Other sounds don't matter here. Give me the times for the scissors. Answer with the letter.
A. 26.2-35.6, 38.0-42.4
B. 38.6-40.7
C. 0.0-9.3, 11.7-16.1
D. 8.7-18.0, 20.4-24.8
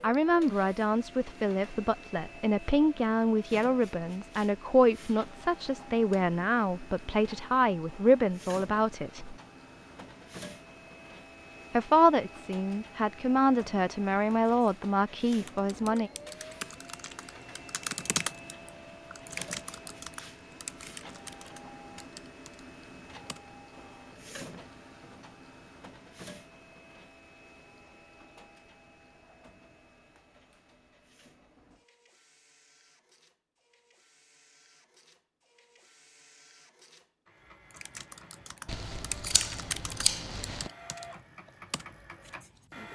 B.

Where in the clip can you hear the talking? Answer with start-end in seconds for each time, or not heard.
0.0-9.3, 11.7-16.1.